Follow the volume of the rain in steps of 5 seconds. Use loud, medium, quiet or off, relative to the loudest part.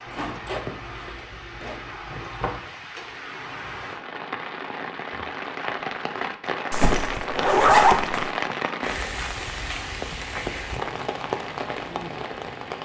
medium, loud, loud.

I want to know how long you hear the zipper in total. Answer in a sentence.
You can hear the zipper for 4 seconds altogether.